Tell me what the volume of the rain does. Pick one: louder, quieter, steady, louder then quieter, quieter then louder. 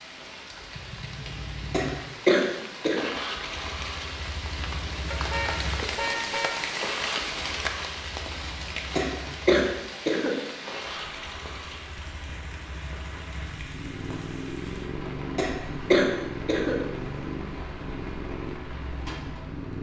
louder then quieter.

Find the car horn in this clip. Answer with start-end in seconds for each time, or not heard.
5.1-6.7.